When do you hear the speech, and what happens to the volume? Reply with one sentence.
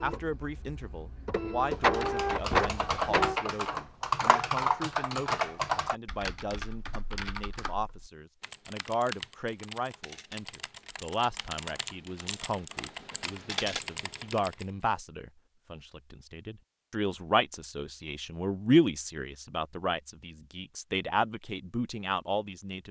The speech can be heard from 0.0 to 22.8 s, getting louder.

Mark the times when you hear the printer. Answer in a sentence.
You can hear the printer from 0.0 to 3.4 s.